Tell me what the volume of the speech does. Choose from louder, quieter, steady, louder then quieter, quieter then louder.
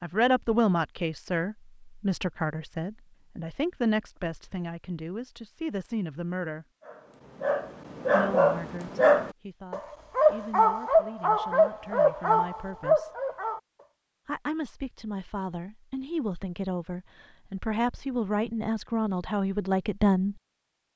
quieter then louder.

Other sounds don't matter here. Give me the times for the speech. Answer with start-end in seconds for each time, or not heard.
0.0-6.7, 8.1-13.2, 14.2-20.4.